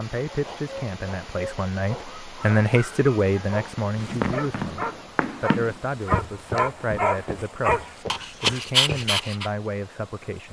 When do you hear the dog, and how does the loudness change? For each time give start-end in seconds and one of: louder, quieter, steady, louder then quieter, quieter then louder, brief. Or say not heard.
0.2-9.5 louder.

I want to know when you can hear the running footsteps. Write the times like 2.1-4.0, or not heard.
4.0-9.1.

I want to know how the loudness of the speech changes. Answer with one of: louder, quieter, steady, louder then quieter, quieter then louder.
louder then quieter.